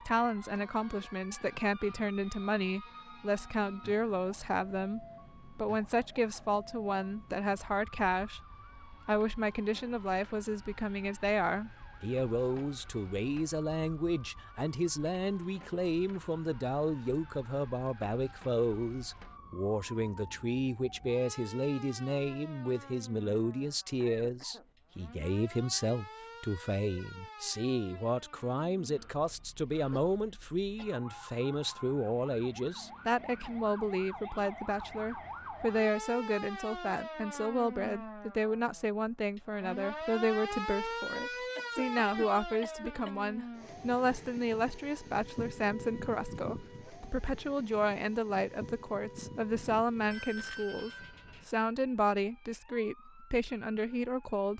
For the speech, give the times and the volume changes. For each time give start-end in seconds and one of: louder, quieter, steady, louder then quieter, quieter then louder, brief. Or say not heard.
0.1-54.5 steady.